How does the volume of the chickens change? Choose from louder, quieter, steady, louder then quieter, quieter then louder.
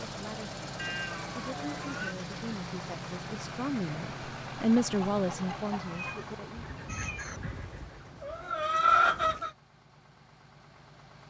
louder.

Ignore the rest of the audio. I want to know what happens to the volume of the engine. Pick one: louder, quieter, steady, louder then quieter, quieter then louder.
quieter.